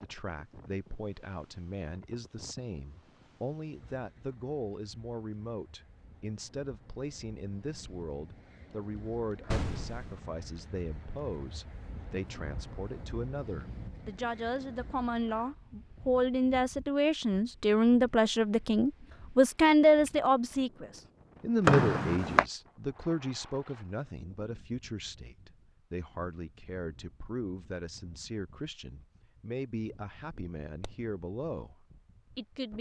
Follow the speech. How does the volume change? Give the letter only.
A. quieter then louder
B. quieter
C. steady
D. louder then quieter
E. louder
D.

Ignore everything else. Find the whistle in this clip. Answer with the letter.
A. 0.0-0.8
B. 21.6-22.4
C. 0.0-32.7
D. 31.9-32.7
B.